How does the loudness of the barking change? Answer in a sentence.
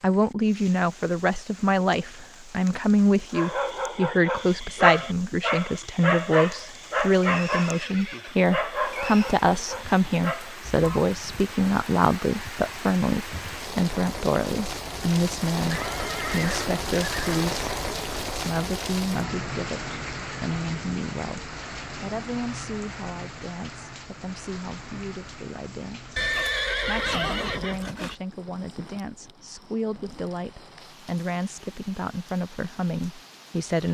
The volume of the barking goes down.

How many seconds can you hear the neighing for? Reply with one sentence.
The neighing can be heard for 6 seconds in total.